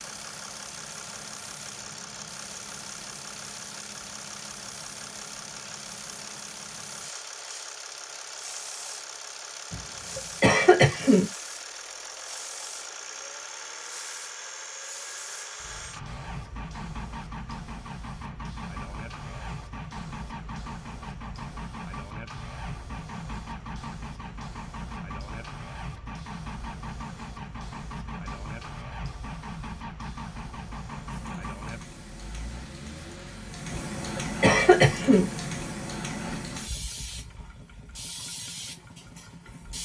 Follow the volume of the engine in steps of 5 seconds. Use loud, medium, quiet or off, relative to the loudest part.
loud, loud, loud, loud, loud, loud, loud, medium.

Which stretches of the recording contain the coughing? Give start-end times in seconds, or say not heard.
9.7-11.2, 33.7-35.3.